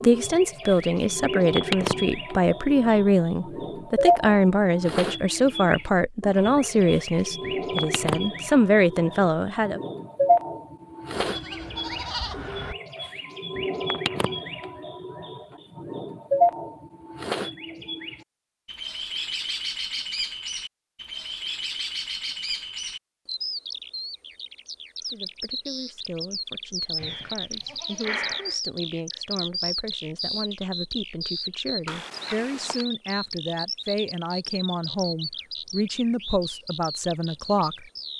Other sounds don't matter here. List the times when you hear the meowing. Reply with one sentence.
The meowing can be heard from 31.9 to 32.9 s.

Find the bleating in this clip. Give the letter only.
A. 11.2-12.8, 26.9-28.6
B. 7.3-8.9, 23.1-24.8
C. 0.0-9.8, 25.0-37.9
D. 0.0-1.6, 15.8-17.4
A.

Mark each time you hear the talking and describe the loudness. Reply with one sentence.
The talking can be heard from 0.0 to 9.8 s, at a steady volume; and from 25.0 to 37.9 s, getting louder.